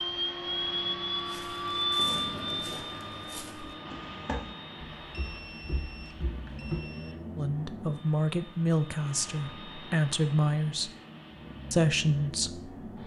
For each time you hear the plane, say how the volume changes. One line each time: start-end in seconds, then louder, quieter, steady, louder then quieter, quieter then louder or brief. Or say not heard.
0.0-13.0 quieter.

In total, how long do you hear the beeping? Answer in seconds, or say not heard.
2 s.